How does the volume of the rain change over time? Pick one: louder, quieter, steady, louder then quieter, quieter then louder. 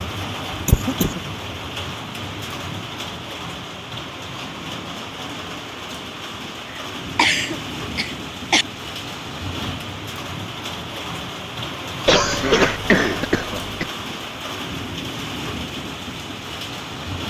steady.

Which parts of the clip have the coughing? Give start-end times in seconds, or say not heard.
0.5-1.2, 6.8-8.7, 12.1-13.9.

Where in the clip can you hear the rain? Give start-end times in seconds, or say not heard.
0.0-17.2.